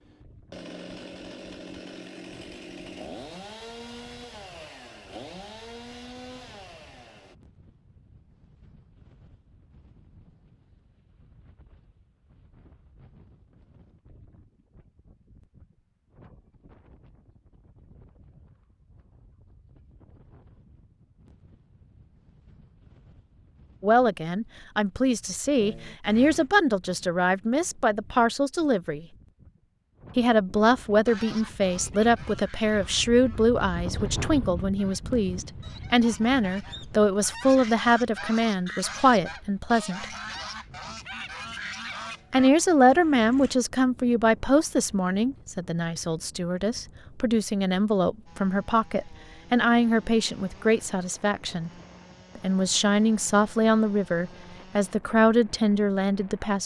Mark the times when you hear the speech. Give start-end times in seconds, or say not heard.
23.8-29.1, 30.1-40.0, 42.3-51.7, 52.4-56.6.